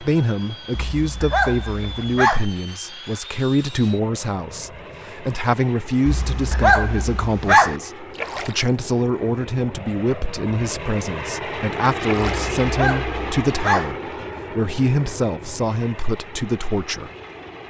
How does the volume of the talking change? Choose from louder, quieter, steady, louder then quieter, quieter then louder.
steady.